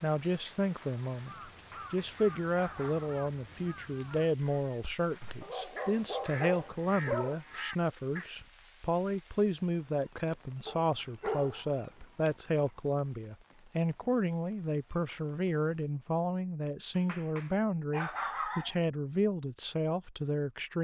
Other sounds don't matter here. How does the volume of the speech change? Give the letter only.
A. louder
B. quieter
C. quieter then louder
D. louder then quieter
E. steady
E.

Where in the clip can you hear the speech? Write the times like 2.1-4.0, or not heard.
0.0-20.7.